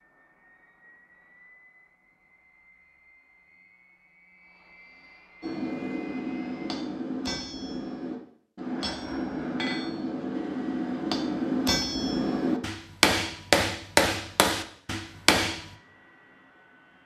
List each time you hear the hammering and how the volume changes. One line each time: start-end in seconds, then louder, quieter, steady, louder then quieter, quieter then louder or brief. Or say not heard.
5.4-15.8 louder.